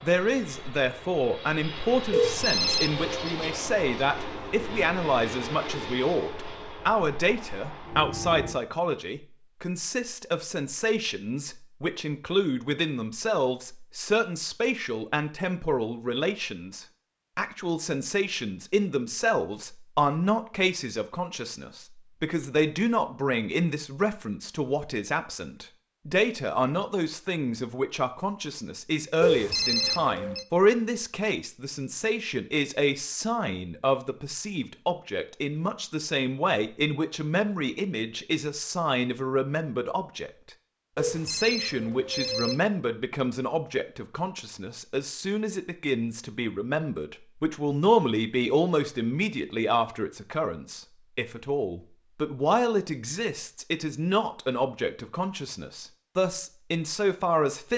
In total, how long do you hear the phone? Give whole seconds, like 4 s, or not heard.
4 s.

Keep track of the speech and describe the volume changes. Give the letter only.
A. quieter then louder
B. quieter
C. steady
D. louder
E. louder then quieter
C.